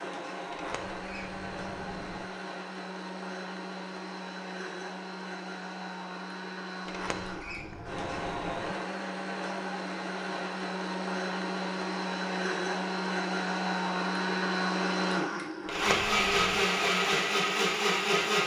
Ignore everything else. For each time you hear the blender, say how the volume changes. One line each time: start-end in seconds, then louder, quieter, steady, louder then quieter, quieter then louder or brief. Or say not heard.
0.0-18.4 louder.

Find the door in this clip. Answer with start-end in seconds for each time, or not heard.
0.5-2.3, 6.8-8.8, 15.7-16.6.